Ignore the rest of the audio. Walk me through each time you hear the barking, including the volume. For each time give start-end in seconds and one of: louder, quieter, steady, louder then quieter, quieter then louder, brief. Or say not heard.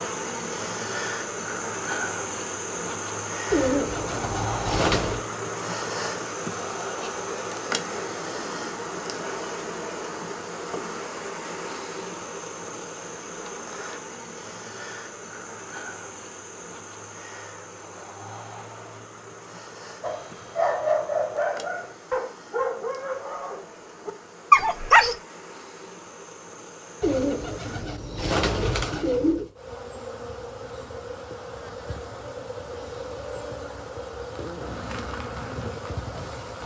20.0-25.1 quieter then louder.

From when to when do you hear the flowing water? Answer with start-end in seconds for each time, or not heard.
not heard.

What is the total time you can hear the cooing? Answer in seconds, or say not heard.
4 s.